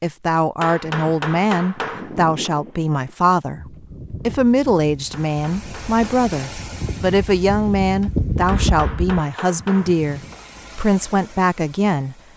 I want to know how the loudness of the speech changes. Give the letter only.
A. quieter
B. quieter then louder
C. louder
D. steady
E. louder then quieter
D.